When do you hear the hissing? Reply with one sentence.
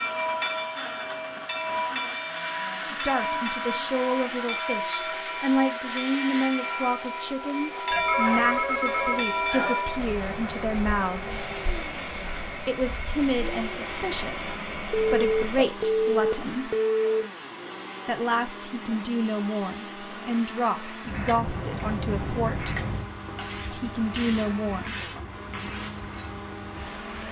You can hear the hissing from 0.0 to 27.2 s.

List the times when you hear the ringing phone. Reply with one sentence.
You can hear the ringing phone from 7.9 to 9.9 s and from 14.9 to 17.2 s.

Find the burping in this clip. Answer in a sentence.
You can't hear the burping here.